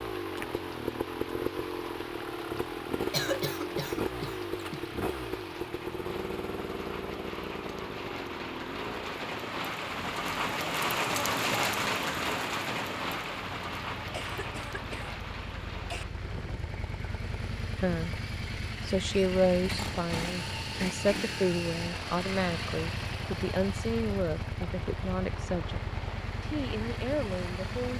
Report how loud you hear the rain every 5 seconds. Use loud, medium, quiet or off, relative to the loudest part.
quiet, medium, loud, quiet, quiet, quiet.